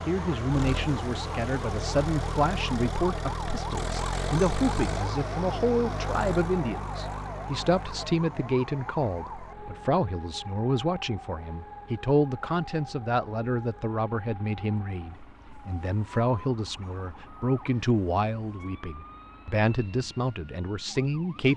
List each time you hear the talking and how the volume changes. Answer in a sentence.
The talking can be heard from 0.1 to 21.5 s, at a steady volume.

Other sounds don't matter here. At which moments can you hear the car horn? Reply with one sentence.
You can't hear the car horn here.